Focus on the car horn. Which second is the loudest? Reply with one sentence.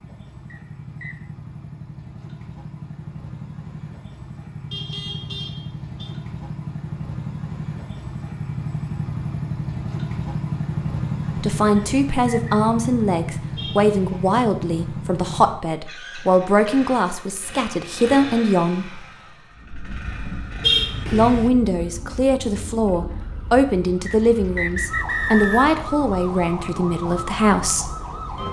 The loudest moment of the car horn is at 21 seconds.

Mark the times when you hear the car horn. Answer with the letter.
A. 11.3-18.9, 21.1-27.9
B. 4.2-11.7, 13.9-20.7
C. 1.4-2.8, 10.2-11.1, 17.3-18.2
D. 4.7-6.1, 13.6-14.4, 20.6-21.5
D.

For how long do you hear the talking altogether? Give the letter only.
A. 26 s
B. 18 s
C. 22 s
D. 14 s
D.